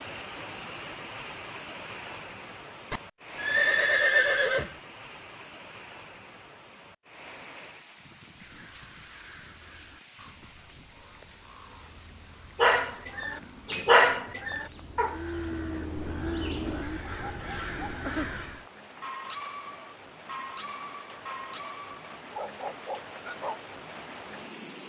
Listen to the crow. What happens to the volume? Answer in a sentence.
The loudness of the crow goes up.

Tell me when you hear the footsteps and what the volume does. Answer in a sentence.
You can't hear the footsteps here.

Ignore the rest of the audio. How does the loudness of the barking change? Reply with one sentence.
The loudness of the barking goes down.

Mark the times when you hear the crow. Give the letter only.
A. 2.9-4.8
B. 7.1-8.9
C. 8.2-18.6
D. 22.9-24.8
C.